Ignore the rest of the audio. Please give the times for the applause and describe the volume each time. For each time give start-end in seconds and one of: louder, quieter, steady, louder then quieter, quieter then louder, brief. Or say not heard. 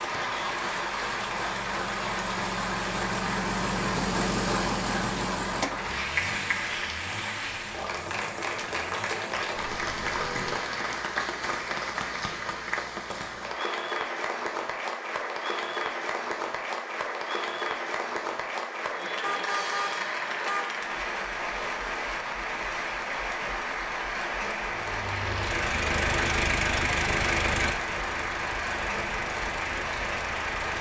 0.0-30.7 steady.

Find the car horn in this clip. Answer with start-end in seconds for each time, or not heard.
9.6-10.7, 19.2-20.8.